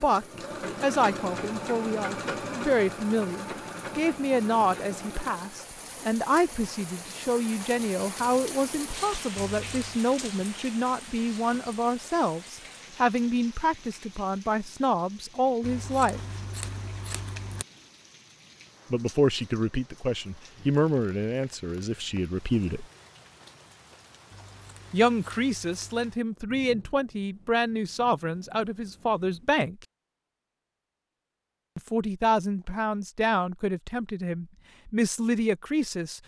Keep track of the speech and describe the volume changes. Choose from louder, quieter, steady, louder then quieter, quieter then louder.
steady.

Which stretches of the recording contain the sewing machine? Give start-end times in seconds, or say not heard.
0.0-5.7.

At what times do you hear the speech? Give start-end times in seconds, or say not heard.
0.0-16.2, 18.9-22.9, 24.9-29.8, 31.8-36.2.